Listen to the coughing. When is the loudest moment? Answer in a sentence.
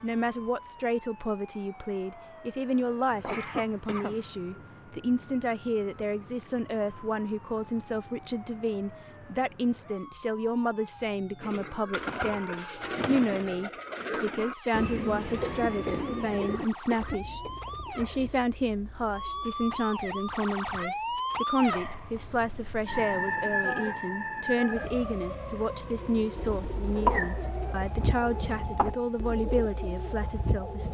The loudest moment of the coughing is at 27 seconds.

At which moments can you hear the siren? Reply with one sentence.
You can hear the siren from 0.0 to 30.8 s.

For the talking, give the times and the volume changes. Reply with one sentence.
The talking can be heard from 0.0 to 30.8 s, at a steady volume.